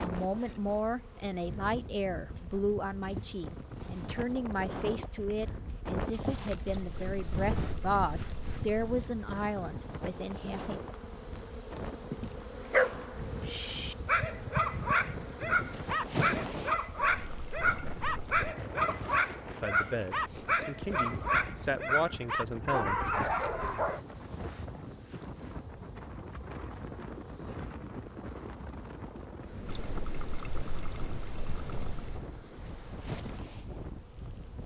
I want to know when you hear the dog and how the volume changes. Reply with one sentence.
You can hear the dog from 12.7 to 24.0 s, at a steady volume.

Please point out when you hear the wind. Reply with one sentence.
The wind can be heard from 0.0 to 34.6 s.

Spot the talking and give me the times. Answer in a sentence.
You can hear the talking from 0.0 to 10.8 s and from 19.6 to 22.9 s.